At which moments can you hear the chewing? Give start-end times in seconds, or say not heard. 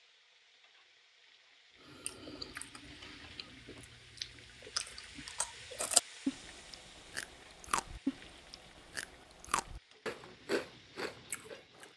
1.8-11.9.